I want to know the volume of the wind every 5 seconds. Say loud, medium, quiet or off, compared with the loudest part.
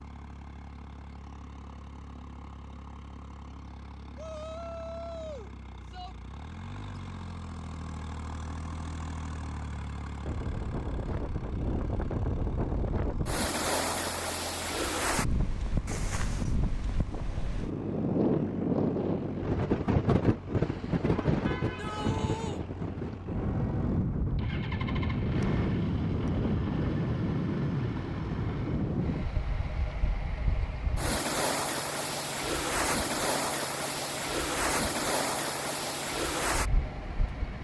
off, off, loud, loud, loud, loud, loud, loud.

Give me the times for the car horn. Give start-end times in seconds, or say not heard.
15.8-16.6, 20.6-22.7.